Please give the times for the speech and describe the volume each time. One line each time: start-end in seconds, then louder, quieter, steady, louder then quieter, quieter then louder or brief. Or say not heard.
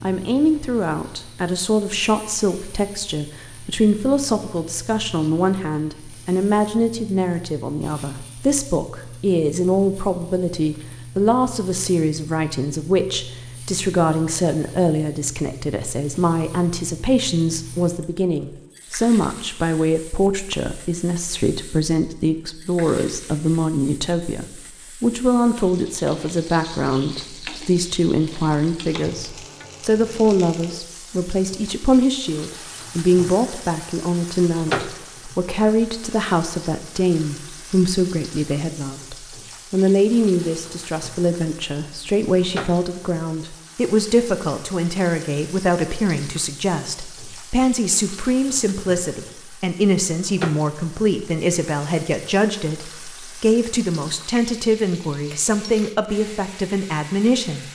0.0-57.6 steady.